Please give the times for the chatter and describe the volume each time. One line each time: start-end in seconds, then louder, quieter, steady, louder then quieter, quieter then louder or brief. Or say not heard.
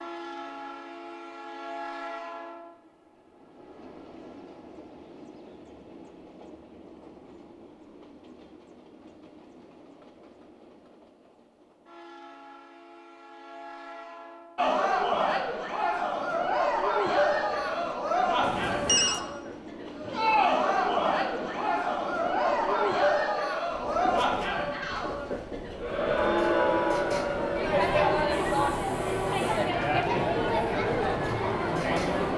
14.6-32.3 steady.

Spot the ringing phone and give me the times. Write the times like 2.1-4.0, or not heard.
18.4-19.2.